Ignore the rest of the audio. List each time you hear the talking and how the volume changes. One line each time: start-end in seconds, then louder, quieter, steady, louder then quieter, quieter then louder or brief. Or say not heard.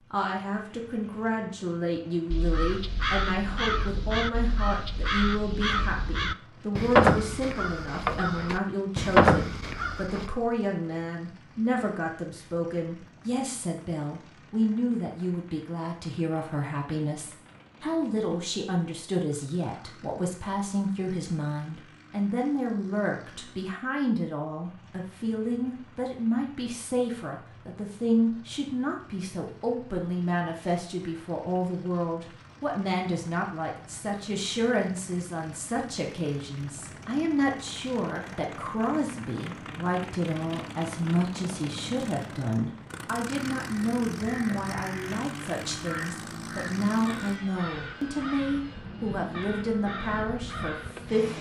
0.1-51.3 steady.